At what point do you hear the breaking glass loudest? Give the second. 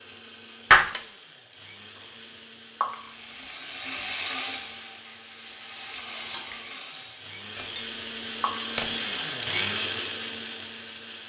1 s.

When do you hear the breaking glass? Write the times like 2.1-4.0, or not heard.
0.7-1.1, 7.5-8.0, 8.8-9.2.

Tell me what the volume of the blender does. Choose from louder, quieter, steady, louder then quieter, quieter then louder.
louder.